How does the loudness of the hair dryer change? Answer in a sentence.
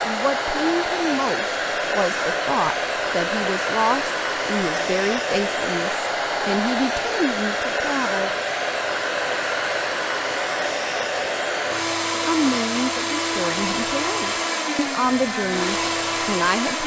The volume of the hair dryer stays about the same.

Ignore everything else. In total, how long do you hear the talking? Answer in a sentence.
You can hear the talking for 13 seconds altogether.